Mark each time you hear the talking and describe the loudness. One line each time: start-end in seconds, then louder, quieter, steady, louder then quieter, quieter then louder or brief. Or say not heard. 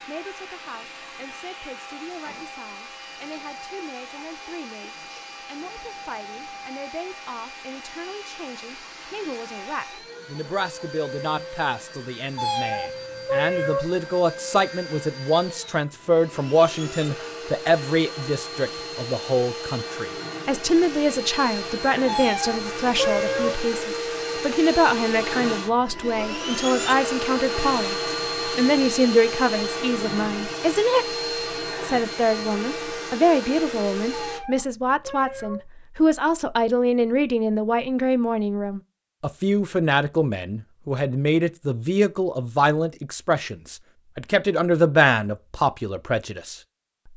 0.1-31.1 louder
31.8-46.5 steady.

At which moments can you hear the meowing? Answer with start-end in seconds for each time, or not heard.
12.3-13.8, 22.1-23.6, 34.1-35.6.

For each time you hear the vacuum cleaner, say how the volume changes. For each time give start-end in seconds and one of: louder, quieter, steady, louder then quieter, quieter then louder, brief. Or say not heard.
0.0-34.4 louder.